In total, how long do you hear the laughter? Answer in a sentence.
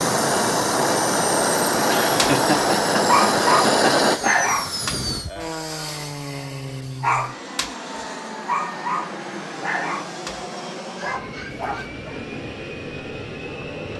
The laughter can be heard for 3 seconds in total.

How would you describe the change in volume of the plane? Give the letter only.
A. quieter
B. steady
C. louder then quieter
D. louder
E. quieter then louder
A.